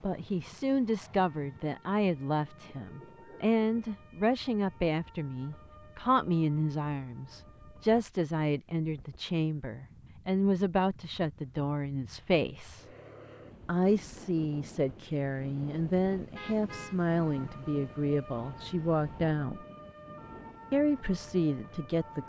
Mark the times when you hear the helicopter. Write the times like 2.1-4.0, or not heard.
not heard.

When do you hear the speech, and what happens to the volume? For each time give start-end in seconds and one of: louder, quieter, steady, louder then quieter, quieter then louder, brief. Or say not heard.
0.0-12.8 steady
13.7-19.6 steady
20.7-22.2 brief.